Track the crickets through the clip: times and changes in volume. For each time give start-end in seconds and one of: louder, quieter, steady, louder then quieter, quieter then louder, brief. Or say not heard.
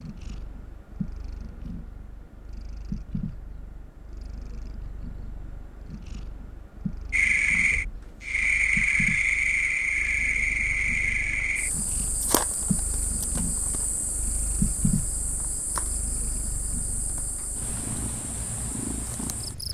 7.1-19.6 quieter.